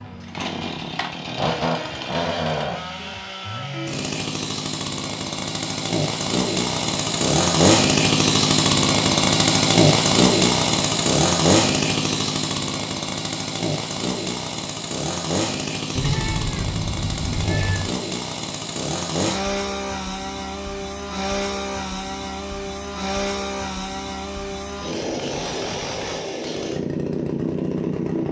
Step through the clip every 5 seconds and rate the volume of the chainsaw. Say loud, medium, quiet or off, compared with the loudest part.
medium, loud, loud, medium, medium, medium.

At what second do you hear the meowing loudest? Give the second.
16 s.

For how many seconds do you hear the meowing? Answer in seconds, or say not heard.
2 s.